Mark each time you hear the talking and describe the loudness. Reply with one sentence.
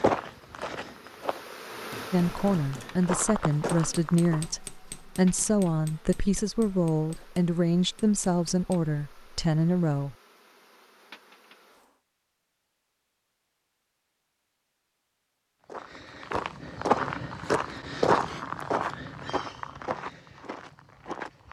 The talking can be heard from 2.1 to 10.2 s, at a steady volume.